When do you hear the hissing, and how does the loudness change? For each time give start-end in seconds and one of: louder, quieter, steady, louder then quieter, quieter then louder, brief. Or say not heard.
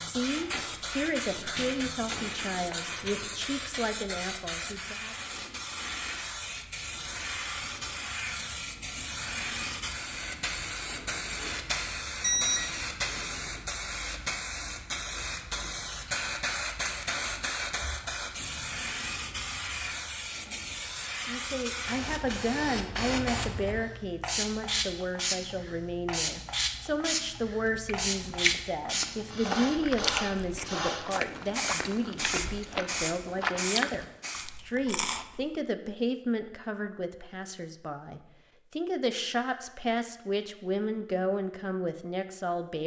0.0-34.5 steady.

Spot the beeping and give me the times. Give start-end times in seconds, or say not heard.
12.2-12.7.